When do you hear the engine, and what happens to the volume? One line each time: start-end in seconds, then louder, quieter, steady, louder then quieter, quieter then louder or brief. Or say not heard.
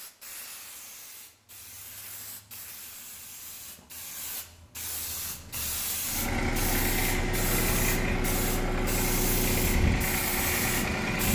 6.0-11.2 steady.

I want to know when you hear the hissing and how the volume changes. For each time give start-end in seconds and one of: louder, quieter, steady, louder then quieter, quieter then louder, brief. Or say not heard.
0.0-11.2 louder.